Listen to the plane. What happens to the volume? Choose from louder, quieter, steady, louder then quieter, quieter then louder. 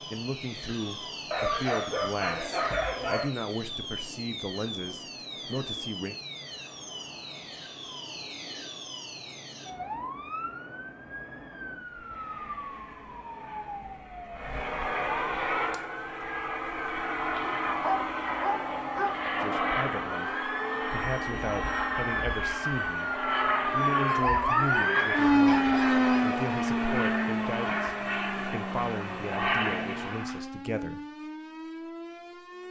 louder.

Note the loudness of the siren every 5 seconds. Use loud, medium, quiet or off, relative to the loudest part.
quiet, quiet, quiet, quiet, loud, loud, quiet.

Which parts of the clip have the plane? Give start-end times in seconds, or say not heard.
0.0-30.4.